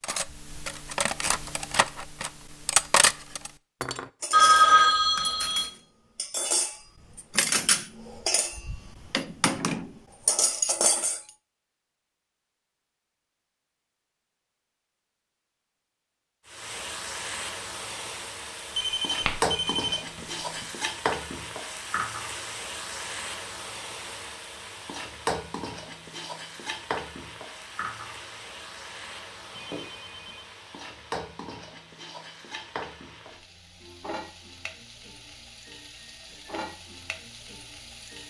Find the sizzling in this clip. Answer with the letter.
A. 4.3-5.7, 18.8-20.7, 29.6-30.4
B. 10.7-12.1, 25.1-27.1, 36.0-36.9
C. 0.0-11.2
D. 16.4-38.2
D.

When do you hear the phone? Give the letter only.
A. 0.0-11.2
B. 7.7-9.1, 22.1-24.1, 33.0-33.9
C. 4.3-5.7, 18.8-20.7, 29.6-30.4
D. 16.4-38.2
C.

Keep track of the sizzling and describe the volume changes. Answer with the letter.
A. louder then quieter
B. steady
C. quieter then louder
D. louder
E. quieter
E.